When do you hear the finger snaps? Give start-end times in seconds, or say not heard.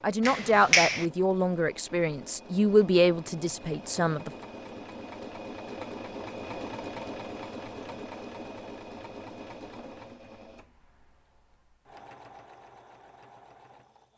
0.2-1.1.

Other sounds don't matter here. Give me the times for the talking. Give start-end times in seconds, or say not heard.
0.0-4.3.